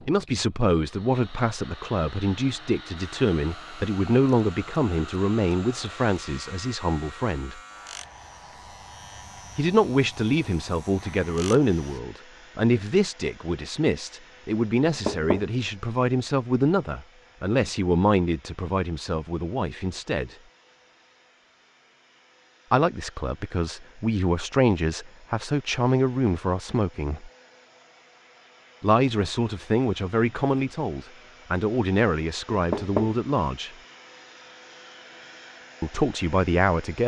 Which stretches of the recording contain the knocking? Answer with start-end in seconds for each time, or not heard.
14.8-15.5, 32.5-33.2.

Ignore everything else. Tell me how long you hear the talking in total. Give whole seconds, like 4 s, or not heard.
29 s.